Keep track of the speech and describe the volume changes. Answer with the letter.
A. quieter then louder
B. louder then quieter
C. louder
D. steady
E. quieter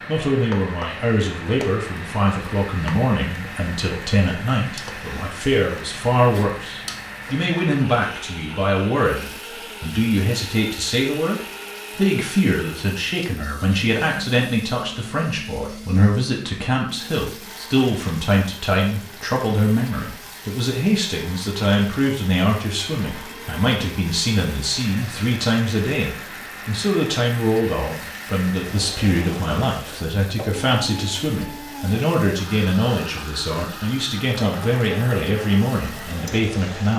D.